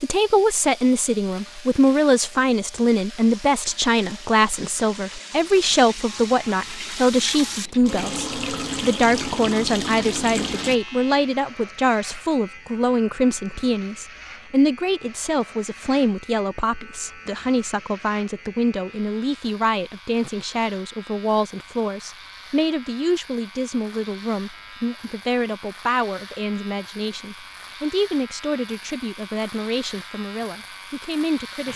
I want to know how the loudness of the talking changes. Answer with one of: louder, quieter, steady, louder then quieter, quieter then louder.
quieter.